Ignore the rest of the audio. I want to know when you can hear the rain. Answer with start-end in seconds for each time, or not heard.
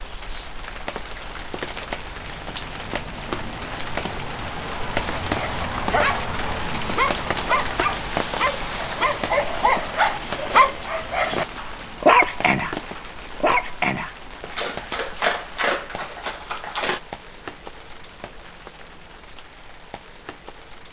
0.0-20.8.